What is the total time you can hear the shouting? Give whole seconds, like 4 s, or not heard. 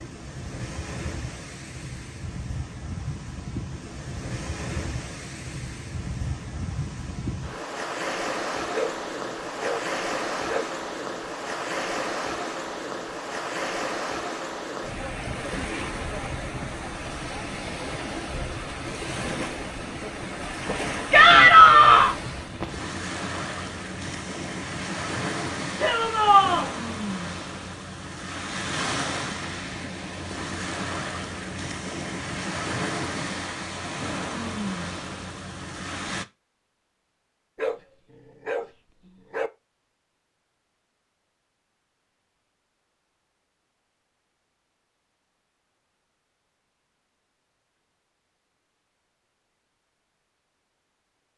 2 s.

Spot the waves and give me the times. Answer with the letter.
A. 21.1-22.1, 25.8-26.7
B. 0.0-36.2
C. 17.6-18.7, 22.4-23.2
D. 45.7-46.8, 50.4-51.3
B.